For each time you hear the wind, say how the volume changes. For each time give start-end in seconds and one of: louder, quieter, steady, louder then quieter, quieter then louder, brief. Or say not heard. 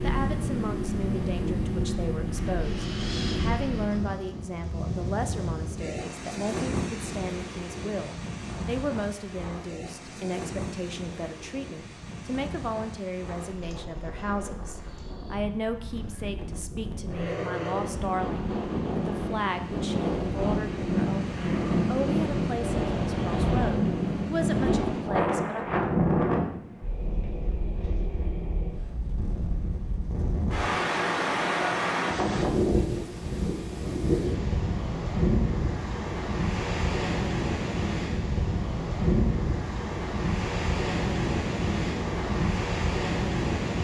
0.0-43.7 quieter then louder.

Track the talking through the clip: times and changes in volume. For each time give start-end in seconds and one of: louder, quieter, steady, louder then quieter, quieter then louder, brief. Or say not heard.
0.0-25.6 steady.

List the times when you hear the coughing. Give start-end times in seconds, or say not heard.
not heard.